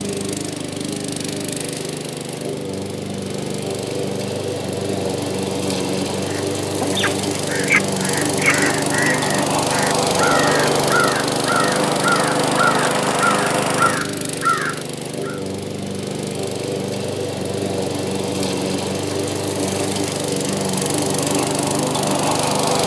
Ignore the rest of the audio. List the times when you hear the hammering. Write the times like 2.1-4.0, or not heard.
not heard.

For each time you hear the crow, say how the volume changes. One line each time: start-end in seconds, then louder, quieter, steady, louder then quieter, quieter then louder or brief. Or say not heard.
6.2-15.4 steady.